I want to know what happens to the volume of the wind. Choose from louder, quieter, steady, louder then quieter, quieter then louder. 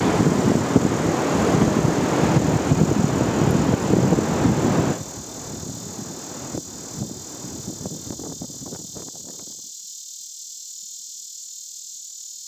quieter.